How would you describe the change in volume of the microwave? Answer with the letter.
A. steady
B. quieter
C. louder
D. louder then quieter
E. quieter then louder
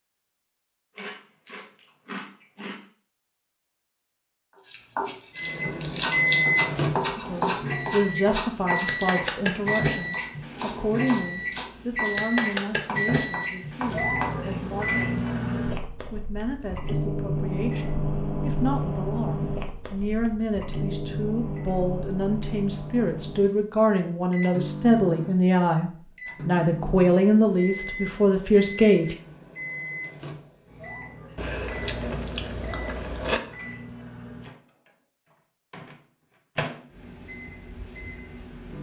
B.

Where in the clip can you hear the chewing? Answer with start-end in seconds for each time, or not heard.
0.9-2.9, 31.4-33.4.